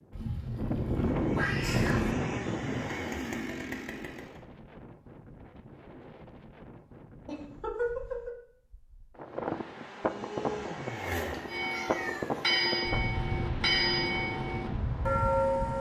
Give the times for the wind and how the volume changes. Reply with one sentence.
You can hear the wind from 0.0 to 15.7 s, getting quieter then louder.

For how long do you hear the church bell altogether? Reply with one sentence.
You can hear the church bell for 4 seconds altogether.